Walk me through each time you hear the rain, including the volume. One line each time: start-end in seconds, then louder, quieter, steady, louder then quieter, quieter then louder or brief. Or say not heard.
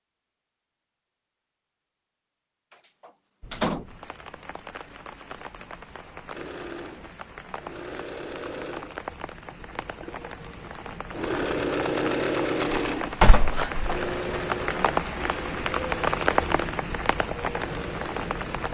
3.4-18.6 louder.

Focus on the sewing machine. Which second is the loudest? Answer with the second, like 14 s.
12 s.